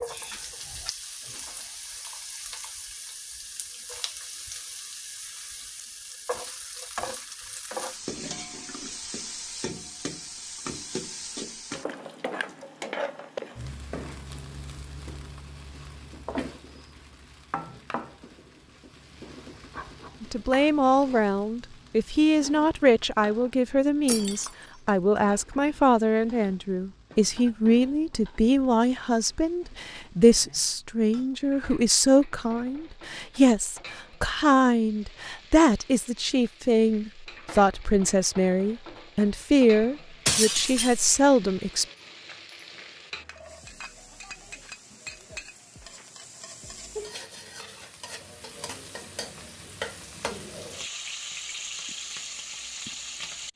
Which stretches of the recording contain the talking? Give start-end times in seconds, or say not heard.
20.2-41.9.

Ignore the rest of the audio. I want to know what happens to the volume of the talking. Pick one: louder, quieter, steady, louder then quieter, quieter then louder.
steady.